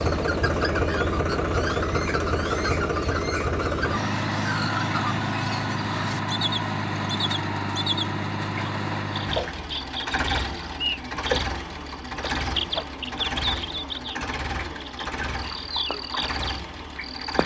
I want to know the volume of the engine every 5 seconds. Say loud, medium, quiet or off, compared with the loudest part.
loud, loud, medium, medium.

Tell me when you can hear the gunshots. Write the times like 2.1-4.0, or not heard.
not heard.